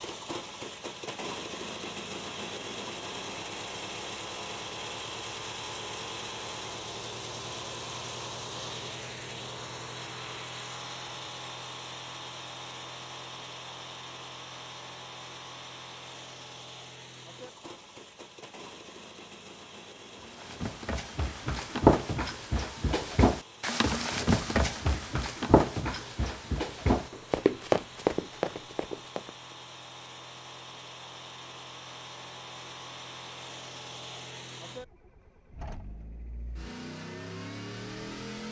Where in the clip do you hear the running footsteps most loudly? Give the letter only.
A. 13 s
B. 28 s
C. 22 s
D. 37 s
C.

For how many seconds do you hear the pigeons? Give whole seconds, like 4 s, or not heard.
not heard.